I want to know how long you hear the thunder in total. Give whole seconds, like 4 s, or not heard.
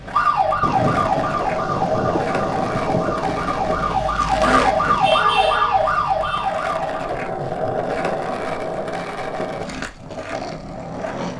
5 s.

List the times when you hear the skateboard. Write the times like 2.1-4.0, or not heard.
0.0-11.3.